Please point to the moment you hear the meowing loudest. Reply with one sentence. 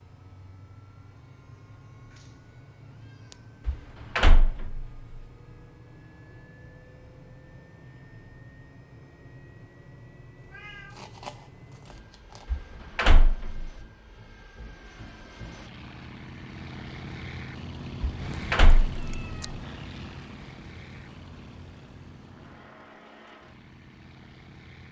The loudest moment of the meowing is at 11 seconds.